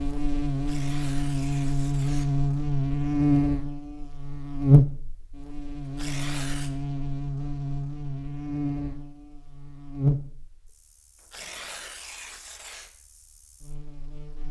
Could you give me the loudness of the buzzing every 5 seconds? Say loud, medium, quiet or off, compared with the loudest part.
loud, medium, medium.